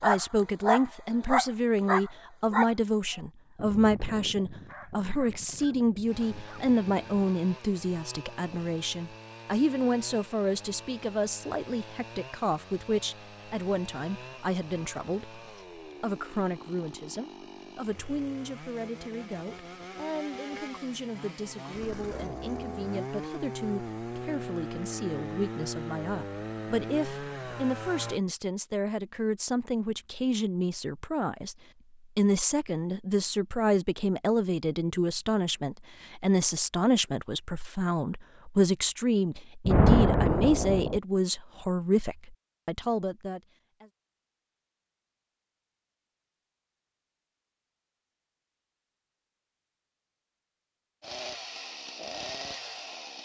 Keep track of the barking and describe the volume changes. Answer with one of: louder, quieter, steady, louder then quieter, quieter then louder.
quieter.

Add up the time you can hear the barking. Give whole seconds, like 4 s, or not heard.
7 s.